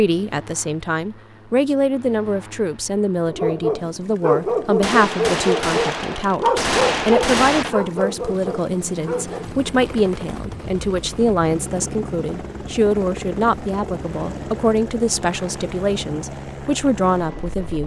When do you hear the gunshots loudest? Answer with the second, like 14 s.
7 s.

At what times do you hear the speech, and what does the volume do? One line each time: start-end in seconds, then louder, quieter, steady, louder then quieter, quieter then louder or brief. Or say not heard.
0.0-17.8 steady.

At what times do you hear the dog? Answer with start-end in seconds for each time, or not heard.
3.2-9.4.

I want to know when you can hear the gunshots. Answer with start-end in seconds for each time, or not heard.
4.8-7.8.